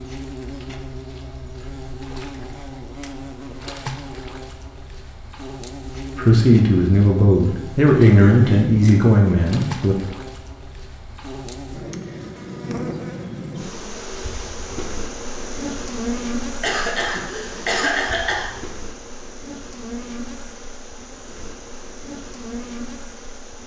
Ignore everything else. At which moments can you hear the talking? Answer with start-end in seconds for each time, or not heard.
6.2-9.9.